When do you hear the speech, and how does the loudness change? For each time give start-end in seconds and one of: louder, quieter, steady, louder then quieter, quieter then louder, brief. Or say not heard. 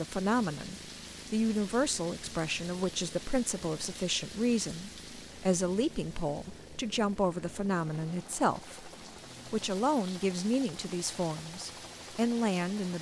0.0-12.9 steady.